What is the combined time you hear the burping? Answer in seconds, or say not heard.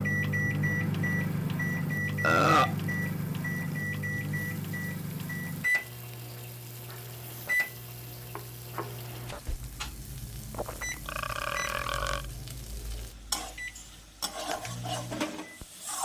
2 s.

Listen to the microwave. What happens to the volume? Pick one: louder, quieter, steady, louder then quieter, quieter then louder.
quieter.